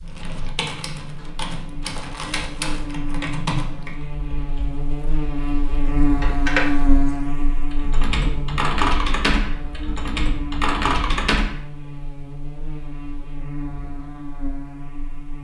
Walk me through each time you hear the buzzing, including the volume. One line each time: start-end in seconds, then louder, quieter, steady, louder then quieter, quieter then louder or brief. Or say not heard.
0.0-15.4 louder then quieter.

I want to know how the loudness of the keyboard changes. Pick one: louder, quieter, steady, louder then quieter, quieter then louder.
louder.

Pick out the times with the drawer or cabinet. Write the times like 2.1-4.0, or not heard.
not heard.